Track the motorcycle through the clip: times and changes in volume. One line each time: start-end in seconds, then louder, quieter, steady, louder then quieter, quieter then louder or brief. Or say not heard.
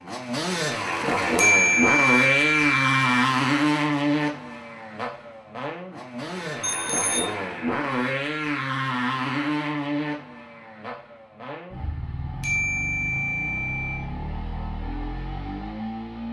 0.0-16.2 quieter.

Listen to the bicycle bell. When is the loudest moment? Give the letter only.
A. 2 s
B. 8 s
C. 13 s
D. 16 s
A.